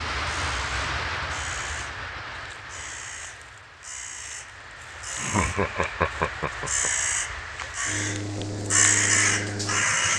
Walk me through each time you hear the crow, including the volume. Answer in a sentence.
You can hear the crow from 0.3 to 10.1 s, getting louder.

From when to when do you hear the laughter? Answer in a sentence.
You can hear the laughter from 5.2 to 6.9 s.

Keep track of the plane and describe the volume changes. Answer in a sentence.
The loudness of the plane goes down, then up.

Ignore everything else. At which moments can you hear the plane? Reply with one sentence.
You can hear the plane from 0.0 to 10.1 s.